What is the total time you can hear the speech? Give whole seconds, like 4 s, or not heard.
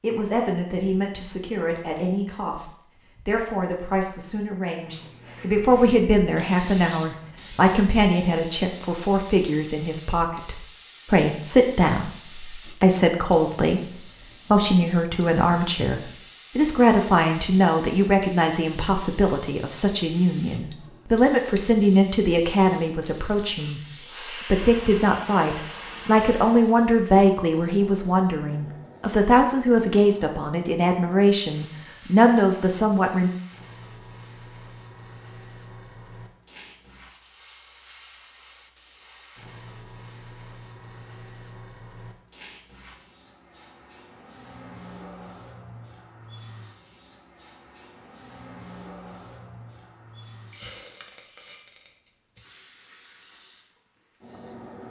33 s.